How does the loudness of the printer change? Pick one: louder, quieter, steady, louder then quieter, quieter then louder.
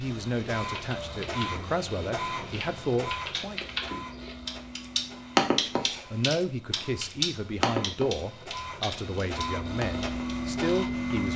quieter then louder.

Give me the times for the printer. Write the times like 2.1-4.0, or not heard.
0.0-11.3.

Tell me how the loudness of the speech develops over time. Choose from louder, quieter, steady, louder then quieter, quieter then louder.
steady.